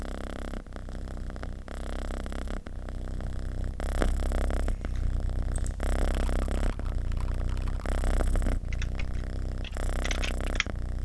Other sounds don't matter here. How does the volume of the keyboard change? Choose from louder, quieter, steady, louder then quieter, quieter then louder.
louder.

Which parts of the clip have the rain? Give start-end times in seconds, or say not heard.
not heard.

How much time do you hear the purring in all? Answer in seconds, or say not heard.
11 s.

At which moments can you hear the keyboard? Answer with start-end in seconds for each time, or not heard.
4.6-10.7.